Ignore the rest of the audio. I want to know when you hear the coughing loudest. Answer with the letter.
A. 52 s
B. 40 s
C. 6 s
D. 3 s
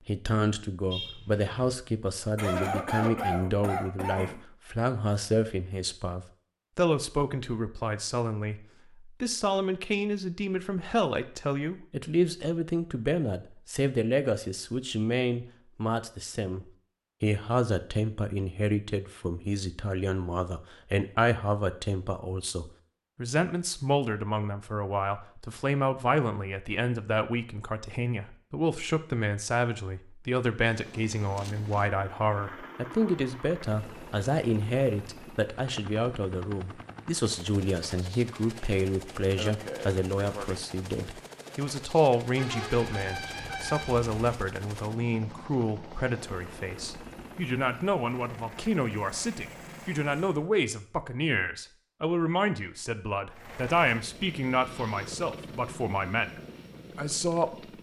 D.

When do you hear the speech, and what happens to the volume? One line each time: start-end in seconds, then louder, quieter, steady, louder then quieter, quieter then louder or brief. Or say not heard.
0.1-56.3 steady
57.0-57.5 brief.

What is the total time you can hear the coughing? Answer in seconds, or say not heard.
3 s.